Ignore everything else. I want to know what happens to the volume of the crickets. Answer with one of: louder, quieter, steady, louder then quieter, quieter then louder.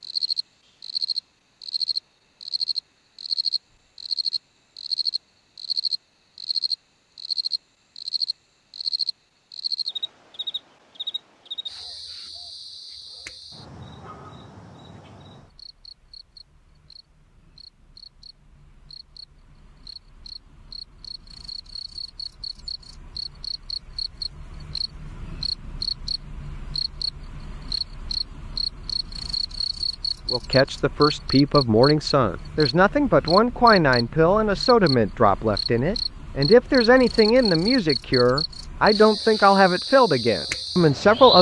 quieter then louder.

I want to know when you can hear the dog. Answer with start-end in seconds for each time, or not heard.
not heard.